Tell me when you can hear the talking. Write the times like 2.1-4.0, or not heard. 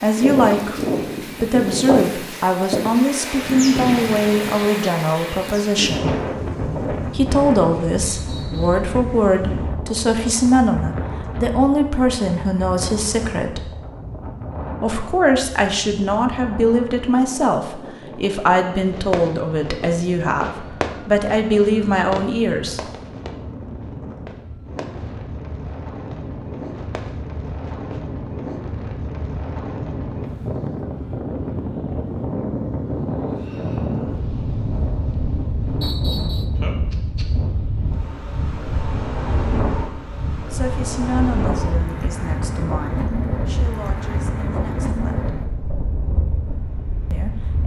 0.0-6.1, 7.1-13.7, 14.8-22.8, 40.5-45.3, 47.1-47.6.